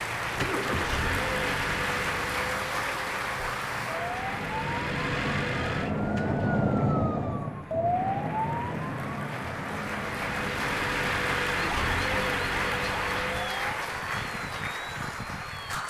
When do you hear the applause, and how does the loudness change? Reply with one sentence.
The applause can be heard from 0.0 to 15.8 s, getting quieter then louder.